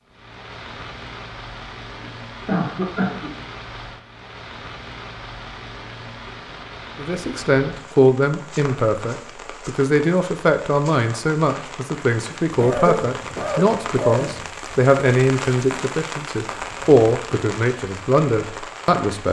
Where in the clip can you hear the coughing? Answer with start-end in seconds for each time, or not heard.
2.0-3.3, 12.4-14.4.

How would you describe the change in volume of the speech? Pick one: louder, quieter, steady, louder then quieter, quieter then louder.
steady.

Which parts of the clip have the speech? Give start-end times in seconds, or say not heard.
7.0-19.2.